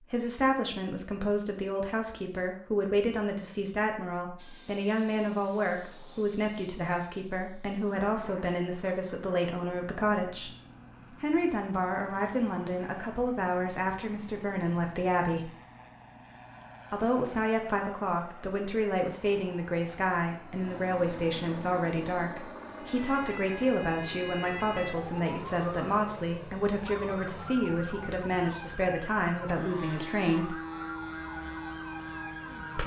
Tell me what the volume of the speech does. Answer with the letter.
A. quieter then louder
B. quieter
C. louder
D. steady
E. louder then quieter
D.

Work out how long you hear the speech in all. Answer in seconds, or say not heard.
28 s.